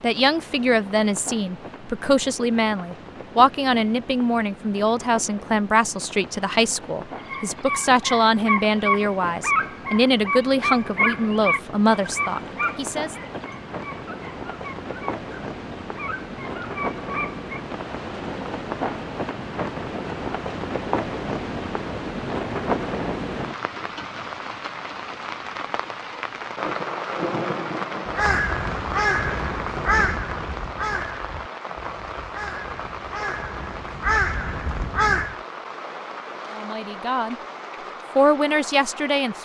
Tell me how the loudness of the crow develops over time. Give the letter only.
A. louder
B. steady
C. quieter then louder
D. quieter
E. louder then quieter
C.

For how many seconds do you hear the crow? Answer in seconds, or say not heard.
7 s.